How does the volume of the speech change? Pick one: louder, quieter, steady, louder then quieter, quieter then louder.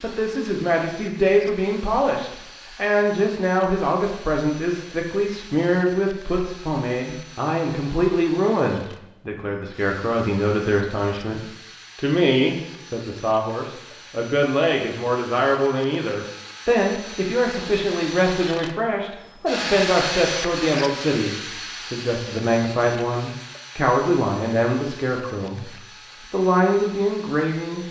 steady.